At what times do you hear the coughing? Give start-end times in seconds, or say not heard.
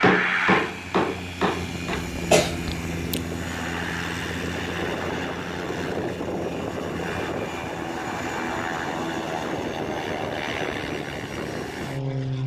2.1-3.2.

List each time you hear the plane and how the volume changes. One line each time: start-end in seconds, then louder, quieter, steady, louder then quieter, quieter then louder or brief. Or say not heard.
0.0-12.4 steady.